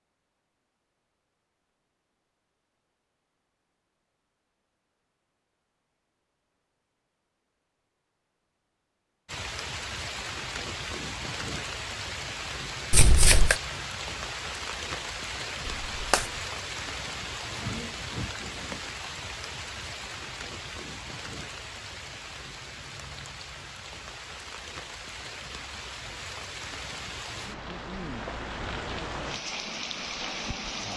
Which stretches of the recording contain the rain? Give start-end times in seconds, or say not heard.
9.2-30.9.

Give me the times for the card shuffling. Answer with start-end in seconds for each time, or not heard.
12.9-13.6, 15.7-16.3.